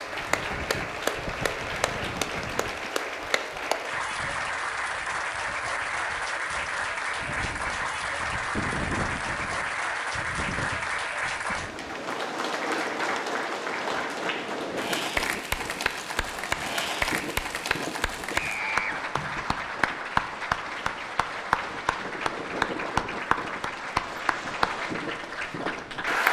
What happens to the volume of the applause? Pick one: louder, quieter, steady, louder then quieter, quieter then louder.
steady.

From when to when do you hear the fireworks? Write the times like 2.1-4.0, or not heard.
not heard.